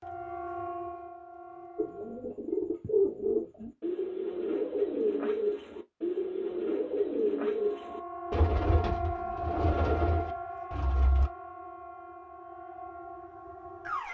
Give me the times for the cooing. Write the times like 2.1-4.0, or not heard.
1.8-11.3.